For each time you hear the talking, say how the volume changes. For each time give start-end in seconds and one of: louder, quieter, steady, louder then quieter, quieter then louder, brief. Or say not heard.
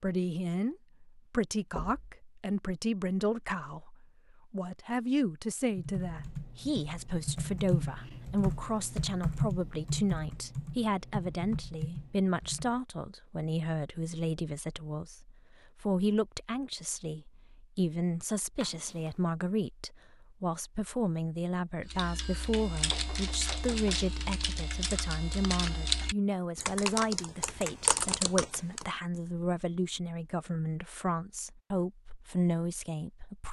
0.0-33.4 steady.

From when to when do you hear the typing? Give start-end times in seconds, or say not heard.
5.7-12.8, 21.9-28.9.